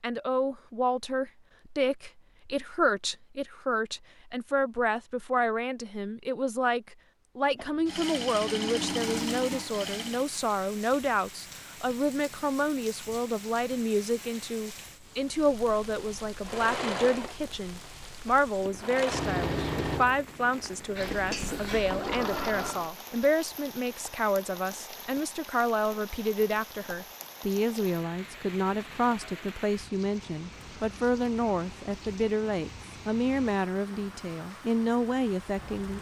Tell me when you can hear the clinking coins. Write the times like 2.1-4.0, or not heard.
not heard.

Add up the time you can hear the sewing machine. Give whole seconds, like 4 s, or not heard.
9 s.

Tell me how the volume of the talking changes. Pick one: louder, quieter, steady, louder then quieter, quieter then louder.
steady.